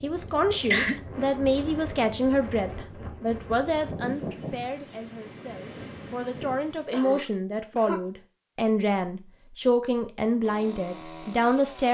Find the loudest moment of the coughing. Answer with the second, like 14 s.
1 s.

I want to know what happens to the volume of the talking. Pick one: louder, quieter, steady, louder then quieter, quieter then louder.
quieter then louder.